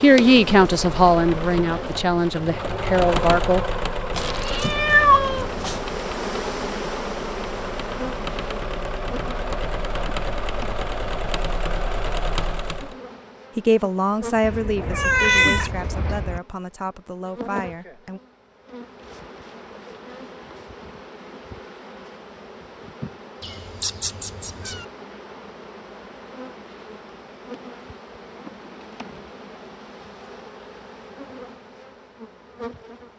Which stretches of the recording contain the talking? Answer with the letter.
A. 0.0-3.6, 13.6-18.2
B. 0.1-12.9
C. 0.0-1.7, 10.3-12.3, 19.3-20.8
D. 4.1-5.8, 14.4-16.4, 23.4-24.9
A.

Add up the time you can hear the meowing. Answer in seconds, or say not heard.
5 s.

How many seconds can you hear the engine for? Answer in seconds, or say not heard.
13 s.